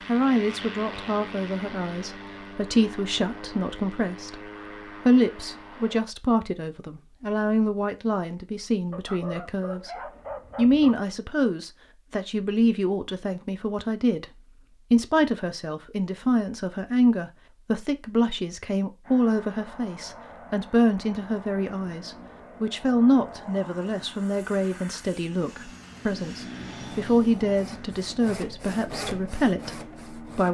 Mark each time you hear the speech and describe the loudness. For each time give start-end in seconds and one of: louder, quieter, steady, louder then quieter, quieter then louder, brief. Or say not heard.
0.1-30.4 steady.